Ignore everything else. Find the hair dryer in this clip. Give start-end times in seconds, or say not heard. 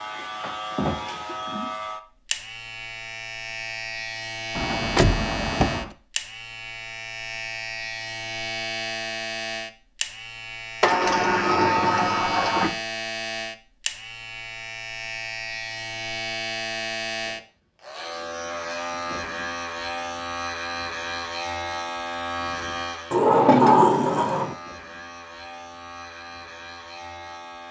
not heard.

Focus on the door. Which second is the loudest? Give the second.
24 s.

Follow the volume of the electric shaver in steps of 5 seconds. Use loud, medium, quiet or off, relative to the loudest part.
loud, loud, loud, loud, loud, medium.